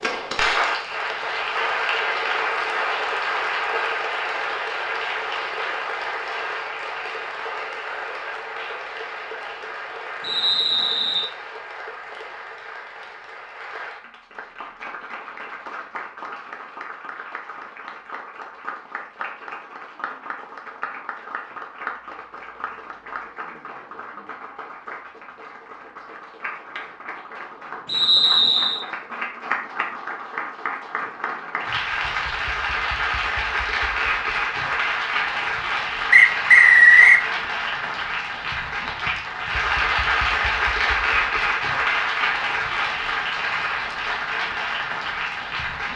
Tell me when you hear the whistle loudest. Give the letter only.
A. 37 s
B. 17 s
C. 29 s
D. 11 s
A.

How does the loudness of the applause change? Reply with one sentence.
The volume of the applause goes down, then up.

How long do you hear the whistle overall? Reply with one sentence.
The whistle can be heard for 3 seconds in total.